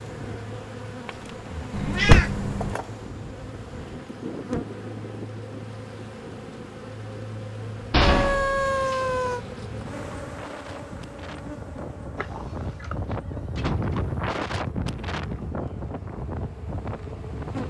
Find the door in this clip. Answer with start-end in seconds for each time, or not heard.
1.1-2.2, 7.9-9.0, 12.8-14.2.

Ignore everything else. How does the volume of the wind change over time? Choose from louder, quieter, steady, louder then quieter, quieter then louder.
louder.